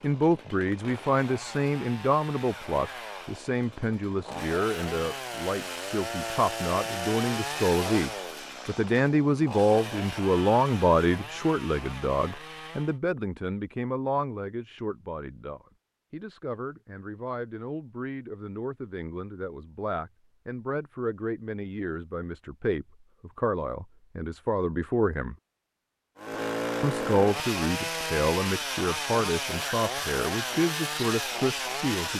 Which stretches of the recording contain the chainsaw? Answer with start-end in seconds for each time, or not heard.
0.0-13.0, 26.1-32.1.